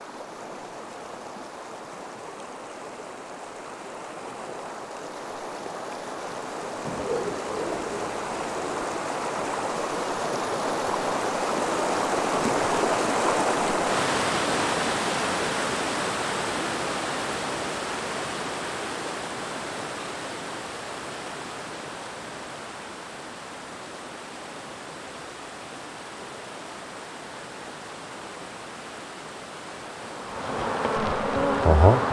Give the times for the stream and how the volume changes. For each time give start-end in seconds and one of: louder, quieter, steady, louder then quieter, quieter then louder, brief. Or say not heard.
0.0-31.9 louder then quieter.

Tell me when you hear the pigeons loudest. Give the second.
7 s.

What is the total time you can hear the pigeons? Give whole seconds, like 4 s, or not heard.
2 s.